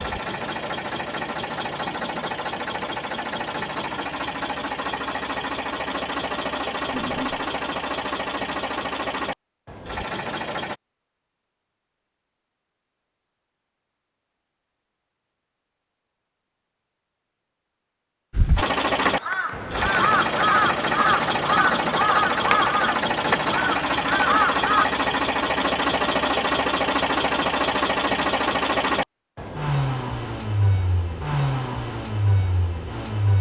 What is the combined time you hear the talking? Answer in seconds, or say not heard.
not heard.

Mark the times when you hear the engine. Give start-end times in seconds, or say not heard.
0.0-10.8, 18.6-33.3.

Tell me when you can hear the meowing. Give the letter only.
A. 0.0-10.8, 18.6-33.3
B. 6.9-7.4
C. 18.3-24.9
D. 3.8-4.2
B.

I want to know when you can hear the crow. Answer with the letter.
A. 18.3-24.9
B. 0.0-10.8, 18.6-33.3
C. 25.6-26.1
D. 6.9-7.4
A.